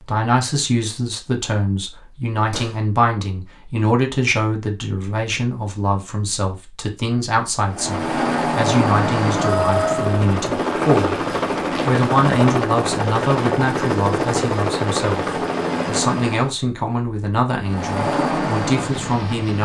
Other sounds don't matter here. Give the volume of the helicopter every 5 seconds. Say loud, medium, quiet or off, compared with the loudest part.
off, loud, loud, loud.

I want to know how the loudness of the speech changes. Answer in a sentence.
The loudness of the speech stays about the same.